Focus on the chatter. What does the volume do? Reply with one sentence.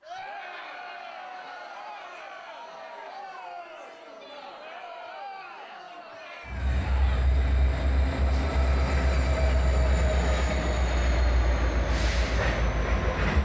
The volume of the chatter stays about the same.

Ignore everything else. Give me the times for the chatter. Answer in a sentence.
The chatter can be heard from 0.0 to 7.2 s.